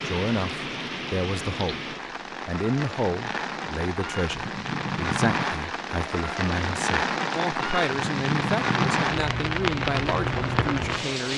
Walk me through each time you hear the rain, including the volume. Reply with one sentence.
You can hear the rain from 0.0 to 11.3 s, getting louder.